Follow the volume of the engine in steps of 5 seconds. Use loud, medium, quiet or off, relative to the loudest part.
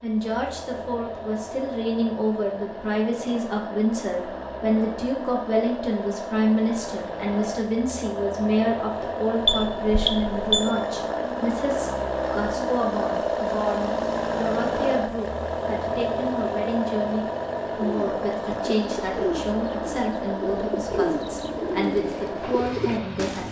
medium, medium, loud, loud, medium.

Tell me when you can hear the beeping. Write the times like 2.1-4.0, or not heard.
9.4-10.7.